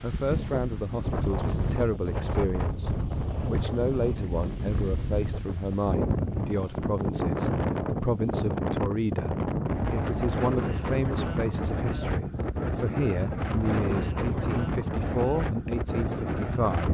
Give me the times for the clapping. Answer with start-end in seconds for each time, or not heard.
not heard.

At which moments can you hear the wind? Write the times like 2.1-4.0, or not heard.
0.0-16.9.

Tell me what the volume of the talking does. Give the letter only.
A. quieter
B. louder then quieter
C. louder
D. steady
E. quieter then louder
D.